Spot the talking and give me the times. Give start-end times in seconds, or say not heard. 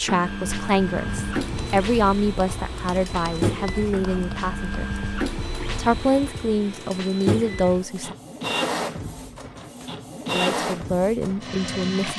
0.0-4.9, 5.8-8.2, 10.3-12.1.